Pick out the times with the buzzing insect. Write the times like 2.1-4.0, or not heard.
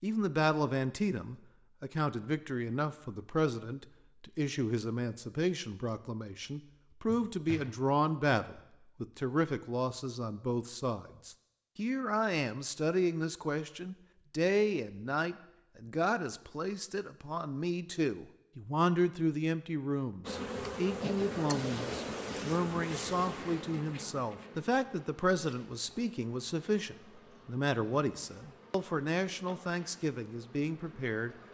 20.2-31.4.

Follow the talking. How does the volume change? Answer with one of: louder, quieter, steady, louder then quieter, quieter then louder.
steady.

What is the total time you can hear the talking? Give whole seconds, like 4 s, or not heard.
31 s.